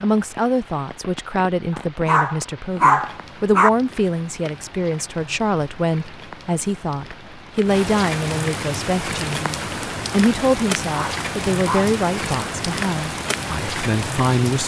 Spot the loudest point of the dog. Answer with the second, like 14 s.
3 s.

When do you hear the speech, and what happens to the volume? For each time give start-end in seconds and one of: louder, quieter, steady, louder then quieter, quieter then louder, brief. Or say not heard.
0.0-14.6 steady.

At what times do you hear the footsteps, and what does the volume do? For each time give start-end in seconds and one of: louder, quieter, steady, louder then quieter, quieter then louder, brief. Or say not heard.
not heard.